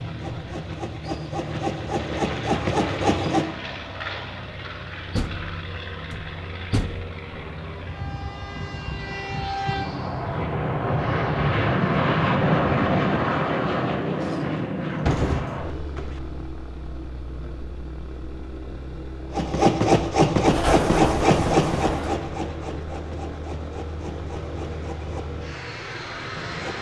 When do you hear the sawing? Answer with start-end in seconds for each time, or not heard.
0.0-3.5, 19.3-26.7.